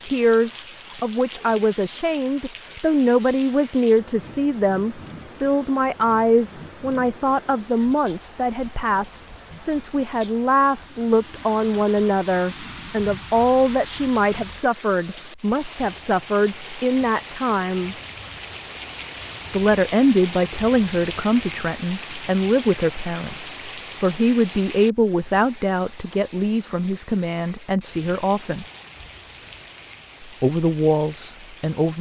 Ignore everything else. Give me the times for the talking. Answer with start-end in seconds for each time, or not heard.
0.0-17.9, 19.5-28.6, 30.2-31.9.